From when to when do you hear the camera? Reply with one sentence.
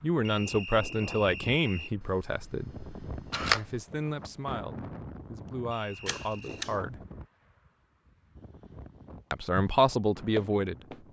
The camera can be heard from 2.0 to 3.8 s and from 6.0 to 6.8 s.